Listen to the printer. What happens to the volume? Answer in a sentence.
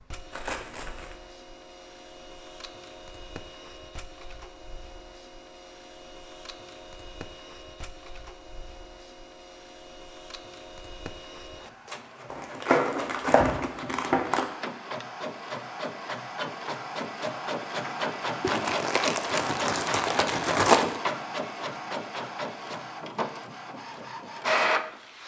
The loudness of the printer goes up.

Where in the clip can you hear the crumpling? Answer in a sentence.
The crumpling can be heard from 0.3 to 1.1 s, from 12.3 to 14.4 s and from 18.4 to 21.0 s.